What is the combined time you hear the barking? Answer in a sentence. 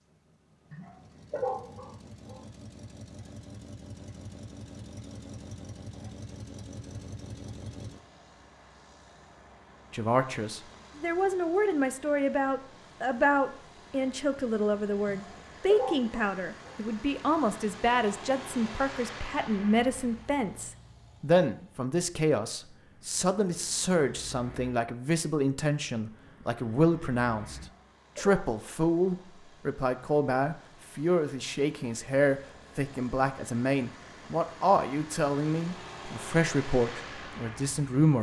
The barking can be heard for 5 seconds in total.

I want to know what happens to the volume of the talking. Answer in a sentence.
The volume of the talking stays about the same.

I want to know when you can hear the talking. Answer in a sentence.
You can hear the talking from 9.9 to 27.6 s and from 28.1 to 38.1 s.